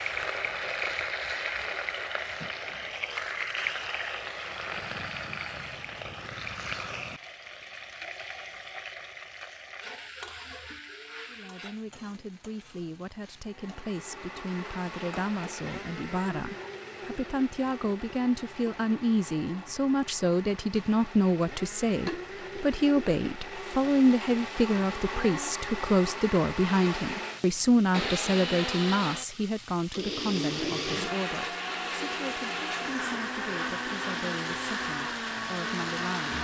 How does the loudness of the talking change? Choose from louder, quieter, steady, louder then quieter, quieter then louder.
louder then quieter.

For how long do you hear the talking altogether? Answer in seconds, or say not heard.
25 s.